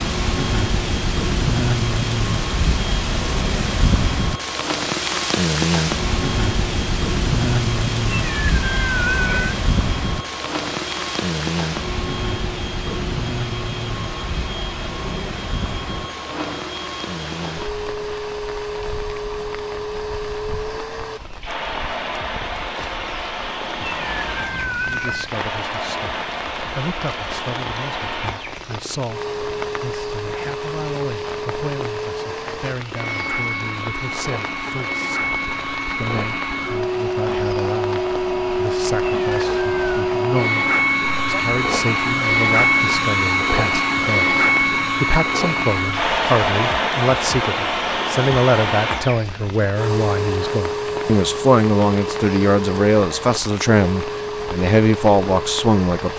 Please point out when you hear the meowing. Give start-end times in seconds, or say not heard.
8.2-9.6, 23.8-25.4, 39.0-40.0.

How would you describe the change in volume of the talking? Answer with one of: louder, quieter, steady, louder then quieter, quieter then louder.
louder.